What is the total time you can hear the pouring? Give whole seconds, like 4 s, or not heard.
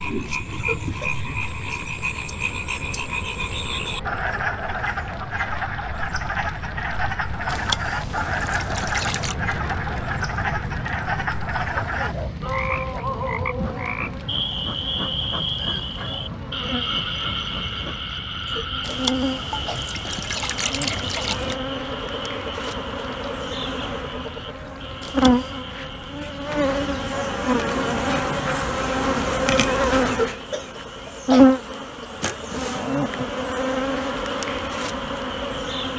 5 s.